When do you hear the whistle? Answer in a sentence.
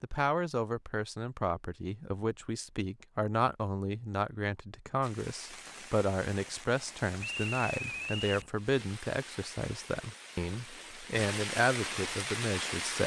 The whistle can be heard from 7.2 to 8.5 s.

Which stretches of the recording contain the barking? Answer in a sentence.
You can't hear the barking here.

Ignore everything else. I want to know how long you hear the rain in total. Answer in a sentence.
You can hear the rain for 8 seconds altogether.